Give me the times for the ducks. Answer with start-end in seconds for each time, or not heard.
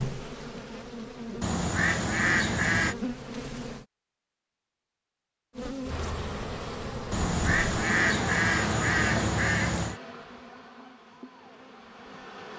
1.4-3.0, 7.1-10.0.